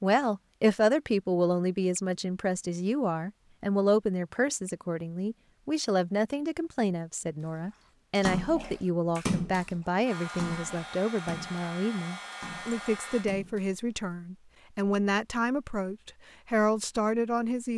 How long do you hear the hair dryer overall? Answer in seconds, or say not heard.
3 s.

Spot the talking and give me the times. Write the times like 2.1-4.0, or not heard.
0.0-17.7.